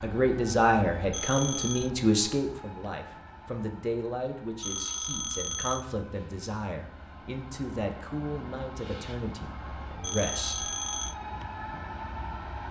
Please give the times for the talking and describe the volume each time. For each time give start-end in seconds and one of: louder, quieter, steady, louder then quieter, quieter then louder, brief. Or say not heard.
0.0-10.7 quieter.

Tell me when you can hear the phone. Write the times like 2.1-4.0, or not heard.
1.1-1.9, 4.6-5.8, 10.0-11.2.